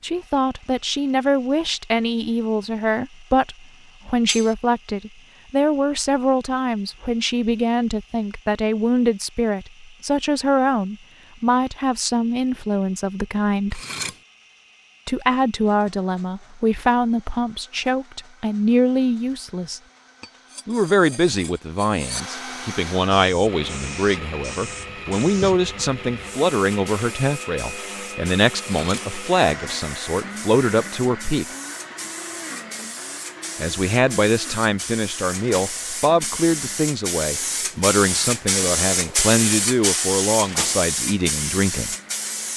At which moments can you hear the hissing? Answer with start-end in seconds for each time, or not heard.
23.1-42.5.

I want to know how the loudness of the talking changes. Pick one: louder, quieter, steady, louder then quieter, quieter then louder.
steady.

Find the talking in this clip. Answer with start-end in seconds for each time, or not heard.
0.0-13.8, 15.1-19.8, 20.6-31.4, 33.6-42.0.